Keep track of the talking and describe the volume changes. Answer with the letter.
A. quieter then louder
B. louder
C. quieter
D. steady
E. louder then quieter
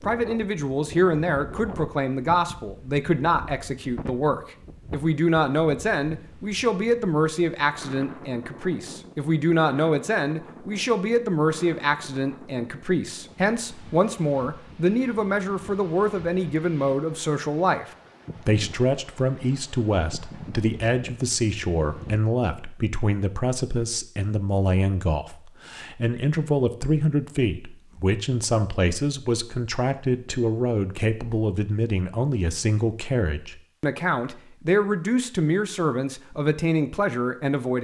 D.